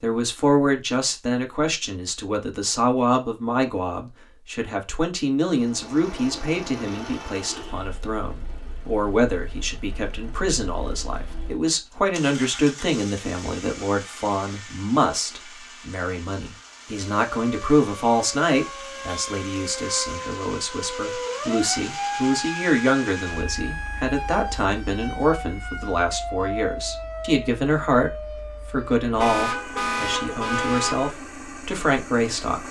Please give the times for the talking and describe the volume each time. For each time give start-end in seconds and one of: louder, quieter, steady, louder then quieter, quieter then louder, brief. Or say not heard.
0.0-32.6 steady.